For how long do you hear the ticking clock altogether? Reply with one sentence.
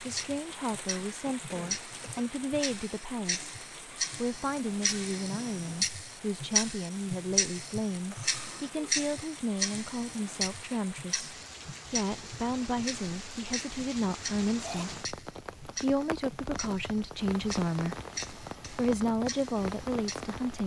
The ticking clock can be heard for 20 seconds in total.